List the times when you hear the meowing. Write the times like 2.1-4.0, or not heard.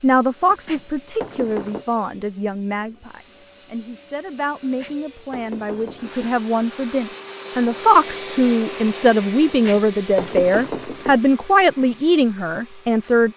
not heard.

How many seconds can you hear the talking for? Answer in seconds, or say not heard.
13 s.